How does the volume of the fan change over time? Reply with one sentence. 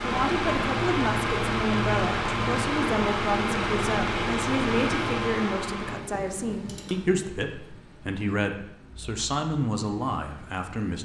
The volume of the fan goes down.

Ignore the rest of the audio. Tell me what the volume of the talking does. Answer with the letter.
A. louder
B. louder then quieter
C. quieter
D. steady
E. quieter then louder
D.